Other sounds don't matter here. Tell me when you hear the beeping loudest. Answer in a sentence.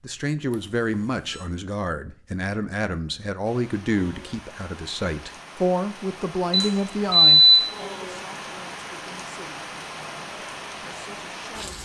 The loudest moment of the beeping is at 7 seconds.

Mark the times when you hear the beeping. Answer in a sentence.
The beeping can be heard from 0.5 to 1.4 s and from 6.5 to 7.8 s.